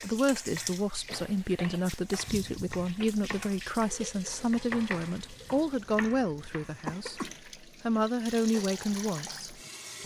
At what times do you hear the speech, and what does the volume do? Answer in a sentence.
You can hear the speech from 0.0 to 10.0 s, at a steady volume.